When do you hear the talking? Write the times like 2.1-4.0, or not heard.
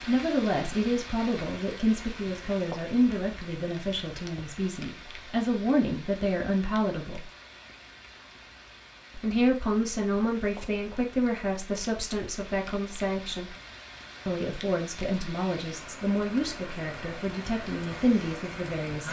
0.1-7.2, 9.2-13.5, 14.2-19.0.